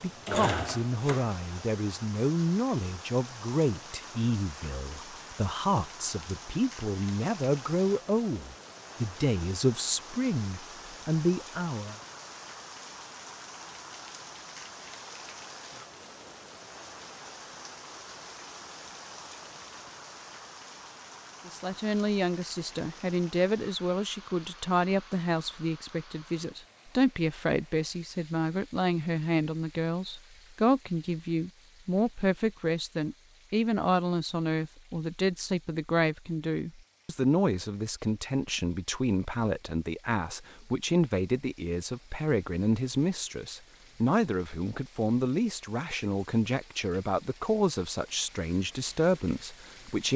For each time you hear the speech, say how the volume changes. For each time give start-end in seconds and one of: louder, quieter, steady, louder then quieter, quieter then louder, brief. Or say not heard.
0.0-11.9 steady
21.4-50.1 steady.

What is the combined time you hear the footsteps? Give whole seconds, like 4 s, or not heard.
not heard.